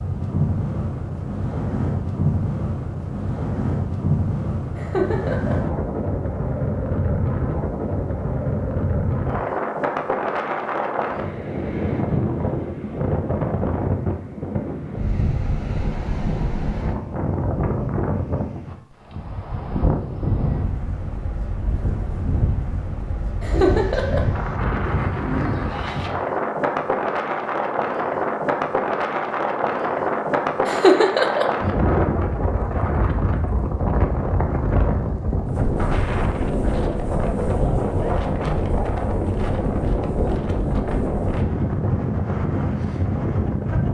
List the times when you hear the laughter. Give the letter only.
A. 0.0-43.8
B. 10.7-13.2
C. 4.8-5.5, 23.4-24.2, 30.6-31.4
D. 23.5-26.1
C.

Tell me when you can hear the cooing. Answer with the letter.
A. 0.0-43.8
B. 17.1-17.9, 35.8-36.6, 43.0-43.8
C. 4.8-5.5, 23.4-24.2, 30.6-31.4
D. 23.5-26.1
D.